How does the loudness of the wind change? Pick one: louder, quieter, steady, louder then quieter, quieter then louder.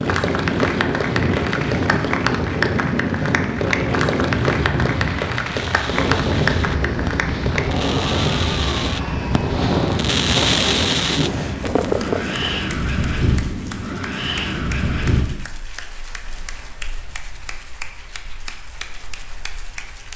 quieter.